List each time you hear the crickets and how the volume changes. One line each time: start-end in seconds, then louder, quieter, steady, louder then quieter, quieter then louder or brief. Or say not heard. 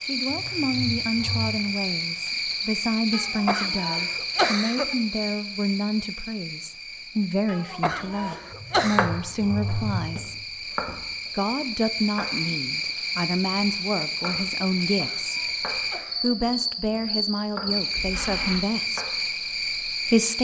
0.0-20.3 quieter then louder.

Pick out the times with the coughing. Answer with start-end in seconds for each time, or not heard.
3.1-5.0, 7.5-9.1, 14.8-16.4.